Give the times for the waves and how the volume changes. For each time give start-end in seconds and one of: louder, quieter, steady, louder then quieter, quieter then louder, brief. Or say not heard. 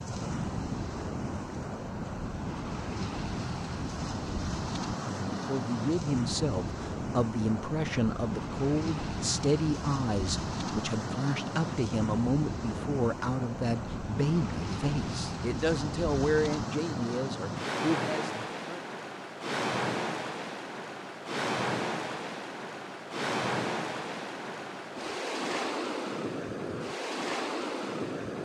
0.0-28.4 steady.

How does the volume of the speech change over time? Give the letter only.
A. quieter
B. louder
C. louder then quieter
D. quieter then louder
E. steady
E.